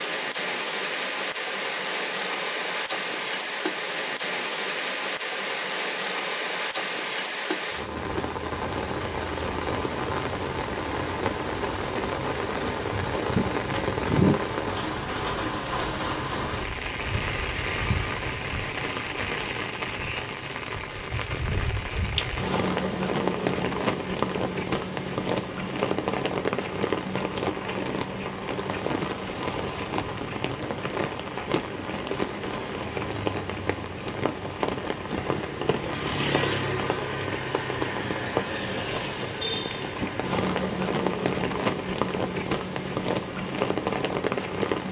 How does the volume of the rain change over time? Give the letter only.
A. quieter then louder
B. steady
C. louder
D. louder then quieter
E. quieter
B.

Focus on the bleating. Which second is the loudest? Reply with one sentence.
The volume of the bleating peaks at 14 seconds.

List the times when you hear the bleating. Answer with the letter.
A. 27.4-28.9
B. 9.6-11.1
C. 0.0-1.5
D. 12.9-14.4
D.